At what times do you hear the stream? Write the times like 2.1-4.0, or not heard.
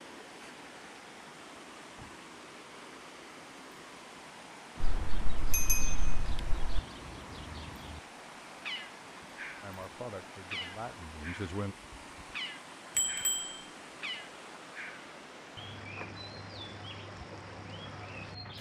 0.0-18.5.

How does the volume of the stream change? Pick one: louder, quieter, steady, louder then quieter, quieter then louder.
steady.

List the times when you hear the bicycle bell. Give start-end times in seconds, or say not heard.
4.8-6.8, 12.9-13.6.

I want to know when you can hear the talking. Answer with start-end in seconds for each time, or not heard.
9.6-11.8.